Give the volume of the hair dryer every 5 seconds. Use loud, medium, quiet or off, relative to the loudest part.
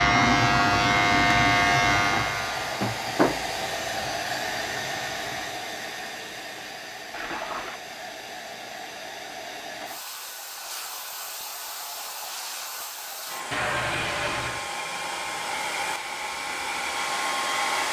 loud, medium, medium, loud.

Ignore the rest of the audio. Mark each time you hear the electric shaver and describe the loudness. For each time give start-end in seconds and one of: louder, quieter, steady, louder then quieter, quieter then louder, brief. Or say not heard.
0.0-5.5 quieter.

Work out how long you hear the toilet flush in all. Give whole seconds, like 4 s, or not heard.
4 s.